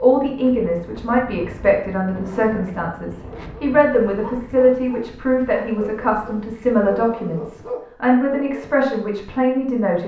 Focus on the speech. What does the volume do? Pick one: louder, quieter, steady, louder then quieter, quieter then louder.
steady.